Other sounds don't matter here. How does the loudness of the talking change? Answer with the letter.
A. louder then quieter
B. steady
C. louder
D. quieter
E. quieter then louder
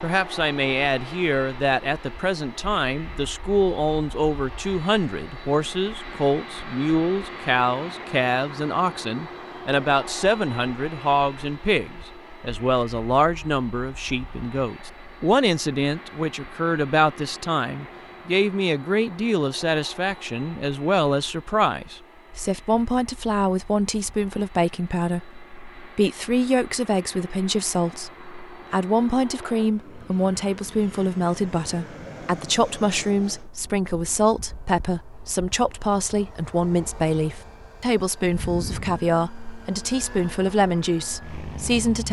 B.